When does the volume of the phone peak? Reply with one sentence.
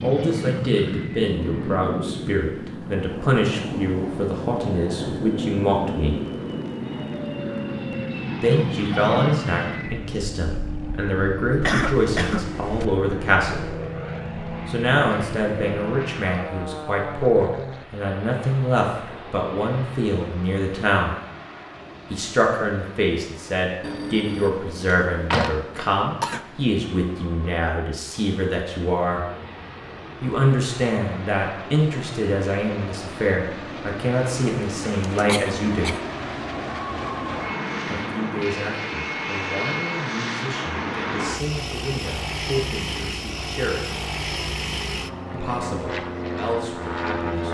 The volume of the phone peaks at 25 seconds.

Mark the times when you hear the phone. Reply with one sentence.
You can hear the phone from 23.8 to 25.9 s.